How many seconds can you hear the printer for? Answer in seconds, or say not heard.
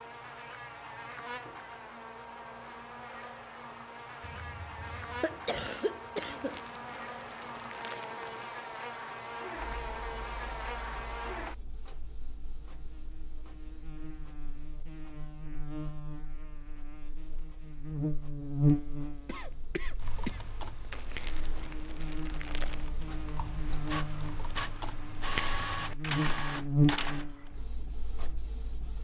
19 s.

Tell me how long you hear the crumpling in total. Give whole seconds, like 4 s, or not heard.
4 s.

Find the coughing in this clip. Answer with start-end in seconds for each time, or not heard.
4.2-6.6, 19.2-20.4.